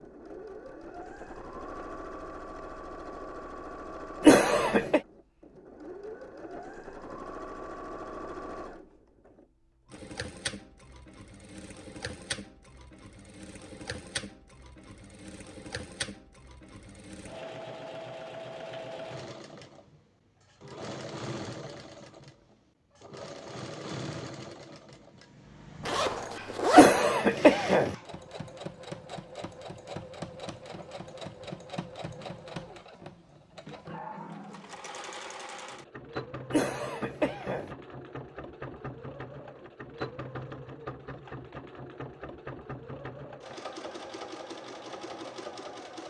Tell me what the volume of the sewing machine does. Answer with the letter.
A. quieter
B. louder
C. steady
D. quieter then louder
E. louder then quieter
C.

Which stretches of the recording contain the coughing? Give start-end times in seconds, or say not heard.
4.2-5.0, 26.8-27.9, 36.5-37.7.